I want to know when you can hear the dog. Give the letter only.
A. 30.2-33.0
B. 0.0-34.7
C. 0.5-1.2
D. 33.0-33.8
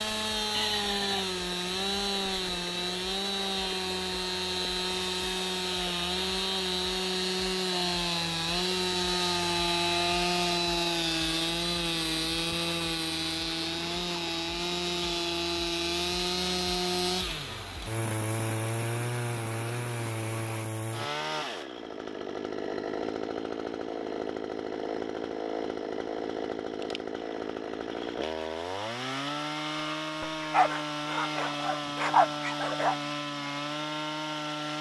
A.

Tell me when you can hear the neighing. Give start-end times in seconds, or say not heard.
0.5-1.2.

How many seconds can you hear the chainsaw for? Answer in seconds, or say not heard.
35 s.